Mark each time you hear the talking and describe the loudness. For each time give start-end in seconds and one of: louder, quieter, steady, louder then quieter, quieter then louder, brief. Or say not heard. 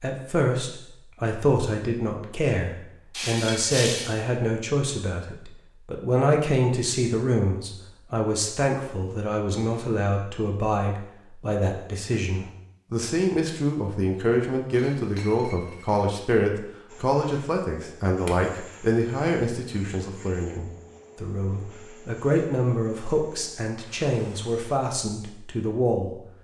0.0-26.1 steady.